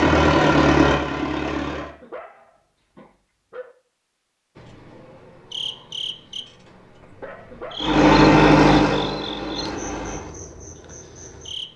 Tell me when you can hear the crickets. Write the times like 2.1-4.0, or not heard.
4.5-11.7.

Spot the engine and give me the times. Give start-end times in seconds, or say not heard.
0.0-1.9, 7.8-10.3.